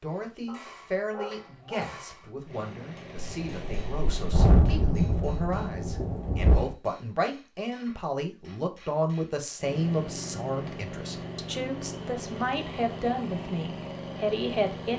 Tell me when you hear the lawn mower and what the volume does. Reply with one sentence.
The lawn mower can be heard briefly from 2.5 to 4.3 s; and from 9.6 to 14.9 s, at a steady volume.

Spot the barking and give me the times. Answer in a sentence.
The barking can be heard from 0.5 to 1.9 s.